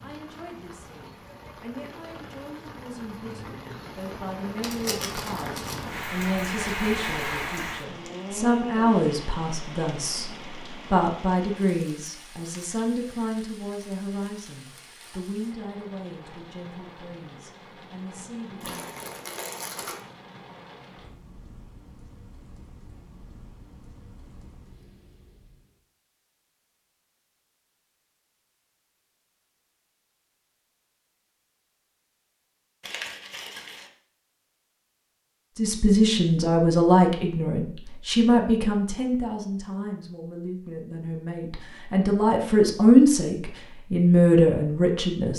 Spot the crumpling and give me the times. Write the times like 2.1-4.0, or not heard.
4.6-5.8, 18.6-20.0, 32.8-33.9.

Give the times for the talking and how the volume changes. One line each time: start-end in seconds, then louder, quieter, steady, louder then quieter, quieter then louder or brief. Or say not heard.
0.0-18.8 louder then quieter
35.5-45.3 quieter then louder.